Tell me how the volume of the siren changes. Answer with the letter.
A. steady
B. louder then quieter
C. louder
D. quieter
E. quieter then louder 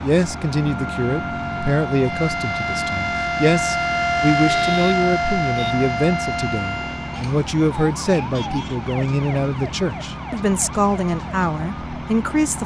B.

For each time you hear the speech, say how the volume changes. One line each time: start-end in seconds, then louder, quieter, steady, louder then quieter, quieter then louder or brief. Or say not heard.
0.0-12.6 steady.